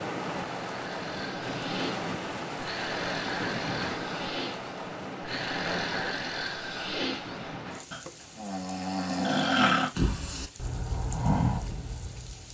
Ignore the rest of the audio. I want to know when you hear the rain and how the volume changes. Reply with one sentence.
The rain can be heard from 0.0 to 12.5 s, getting quieter.